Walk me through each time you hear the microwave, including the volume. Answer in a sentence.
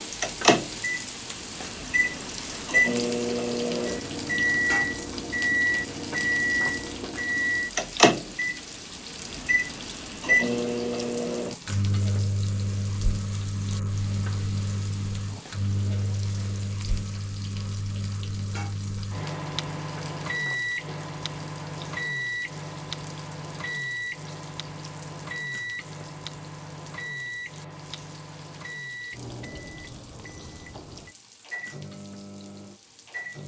The microwave can be heard from 0.0 to 33.4 s, getting quieter.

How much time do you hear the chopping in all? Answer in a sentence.
The chopping can't be heard in this clip.